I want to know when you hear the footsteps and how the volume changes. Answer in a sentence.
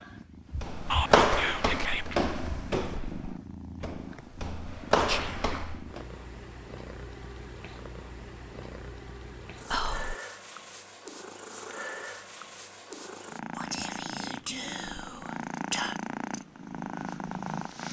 You can hear the footsteps from 0.6 to 6.0 s, getting quieter then louder.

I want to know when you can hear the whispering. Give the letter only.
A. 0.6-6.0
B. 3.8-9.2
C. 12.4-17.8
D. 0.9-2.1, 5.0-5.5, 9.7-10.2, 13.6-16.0
D.